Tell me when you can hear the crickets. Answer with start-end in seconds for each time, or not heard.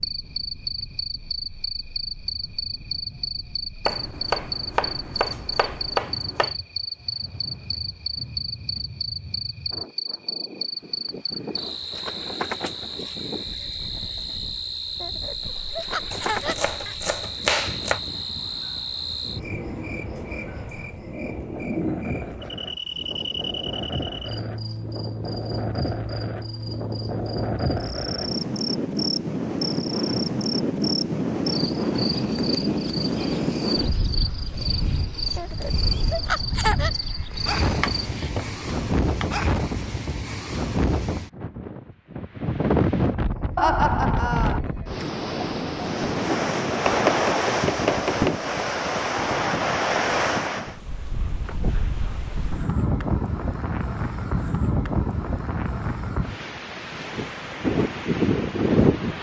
0.0-38.4.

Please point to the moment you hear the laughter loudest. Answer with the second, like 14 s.
44 s.